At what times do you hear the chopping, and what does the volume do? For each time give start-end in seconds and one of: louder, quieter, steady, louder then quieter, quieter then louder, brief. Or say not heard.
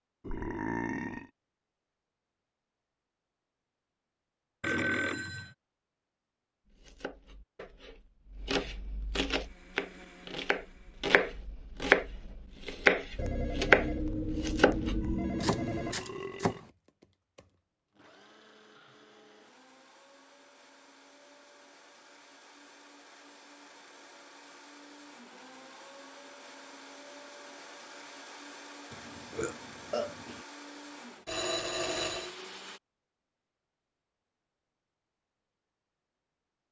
6.7-16.6 louder then quieter.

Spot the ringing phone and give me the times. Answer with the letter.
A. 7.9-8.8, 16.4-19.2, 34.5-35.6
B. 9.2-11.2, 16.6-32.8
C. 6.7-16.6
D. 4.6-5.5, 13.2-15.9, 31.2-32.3
D.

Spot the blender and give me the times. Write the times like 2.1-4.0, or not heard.
9.2-11.2, 16.6-32.8.